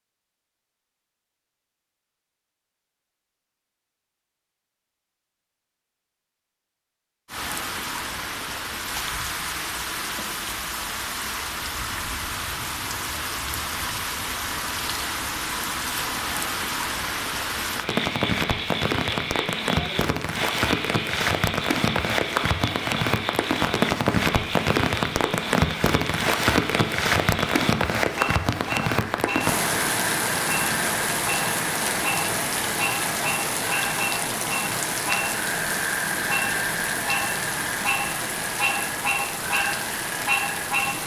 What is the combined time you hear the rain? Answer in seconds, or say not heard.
34 s.